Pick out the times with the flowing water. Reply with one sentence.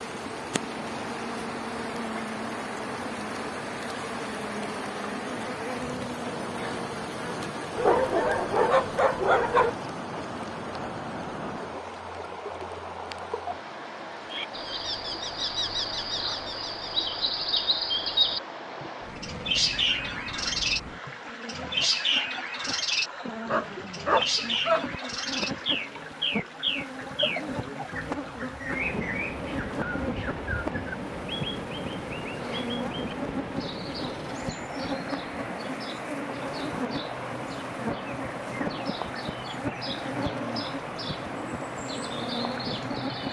You can hear the flowing water from 0.0 to 43.2 s.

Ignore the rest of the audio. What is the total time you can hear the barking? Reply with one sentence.
You can hear the barking for 3 seconds altogether.